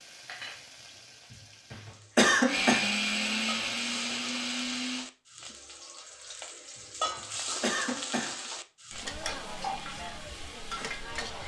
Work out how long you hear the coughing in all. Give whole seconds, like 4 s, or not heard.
3 s.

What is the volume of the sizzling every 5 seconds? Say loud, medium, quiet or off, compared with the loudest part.
medium, loud, loud.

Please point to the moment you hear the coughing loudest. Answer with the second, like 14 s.
2 s.